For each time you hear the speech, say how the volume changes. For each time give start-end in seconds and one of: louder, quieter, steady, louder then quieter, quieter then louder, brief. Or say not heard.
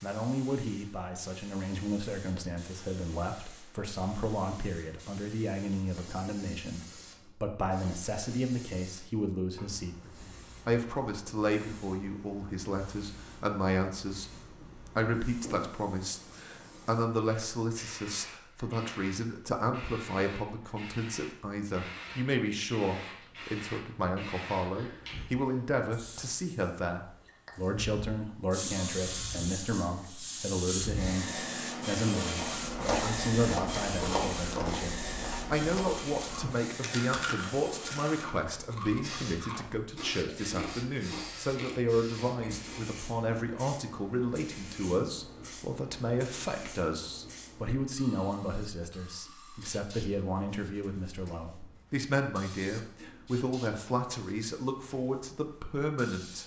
0.0-56.4 steady.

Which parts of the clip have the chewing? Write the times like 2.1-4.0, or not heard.
32.3-42.9.